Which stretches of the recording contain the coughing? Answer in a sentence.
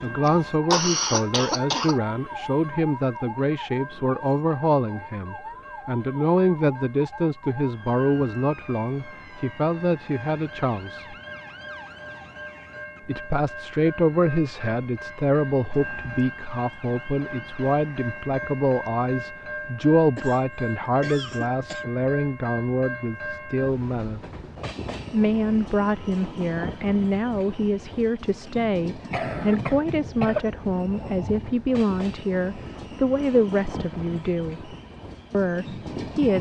You can hear the coughing from 0.2 to 2.0 s, from 20.1 to 21.9 s and from 29.1 to 30.4 s.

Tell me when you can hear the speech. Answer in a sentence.
You can hear the speech from 0.0 to 11.2 s, from 13.1 to 24.2 s and from 25.1 to 36.3 s.